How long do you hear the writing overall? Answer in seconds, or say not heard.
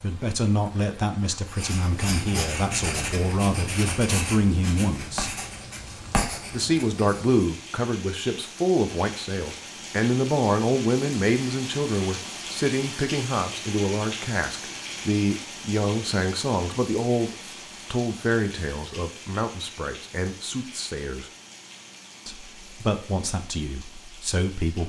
6 s.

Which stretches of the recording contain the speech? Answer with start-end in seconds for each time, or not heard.
0.0-5.4, 6.5-21.3, 22.2-24.8.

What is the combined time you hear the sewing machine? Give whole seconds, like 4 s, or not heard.
not heard.